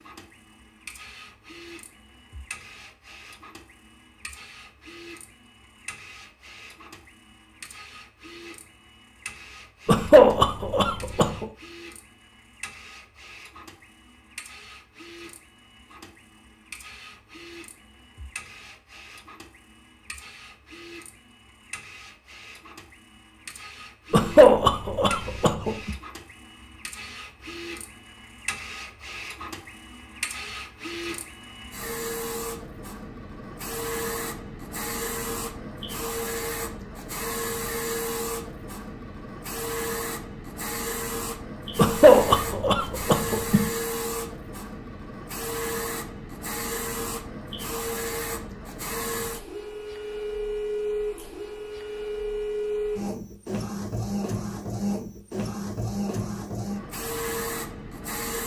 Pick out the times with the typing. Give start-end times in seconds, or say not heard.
not heard.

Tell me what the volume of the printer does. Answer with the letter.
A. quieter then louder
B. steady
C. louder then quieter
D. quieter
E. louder
E.